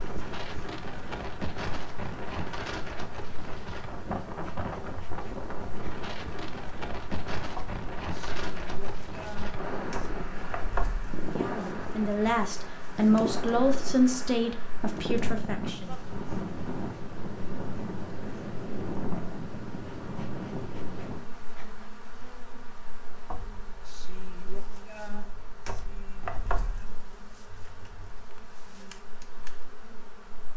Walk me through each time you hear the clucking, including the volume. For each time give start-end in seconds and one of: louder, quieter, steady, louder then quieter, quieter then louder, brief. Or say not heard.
not heard.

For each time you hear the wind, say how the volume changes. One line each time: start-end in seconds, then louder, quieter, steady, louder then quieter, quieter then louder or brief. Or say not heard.
0.0-21.3 steady.